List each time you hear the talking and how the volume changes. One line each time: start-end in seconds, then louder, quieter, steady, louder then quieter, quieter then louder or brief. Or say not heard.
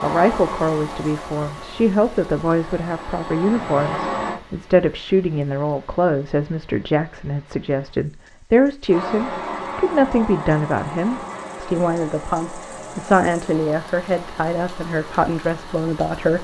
0.0-16.3 steady.